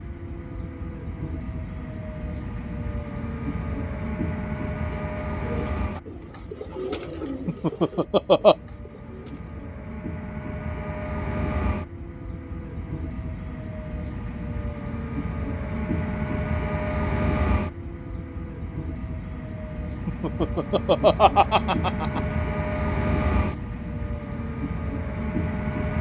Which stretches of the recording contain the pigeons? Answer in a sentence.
You can hear the pigeons from 4.7 to 9.9 s.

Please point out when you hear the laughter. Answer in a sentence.
You can hear the laughter from 7.5 to 8.6 s and from 20.1 to 22.2 s.